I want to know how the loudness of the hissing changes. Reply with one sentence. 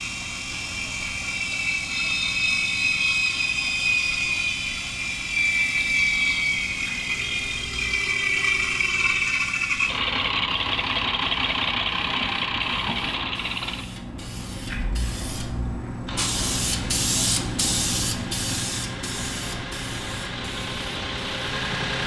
The loudness of the hissing goes up.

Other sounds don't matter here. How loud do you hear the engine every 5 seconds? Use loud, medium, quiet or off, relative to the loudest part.
loud, loud, loud, quiet, medium.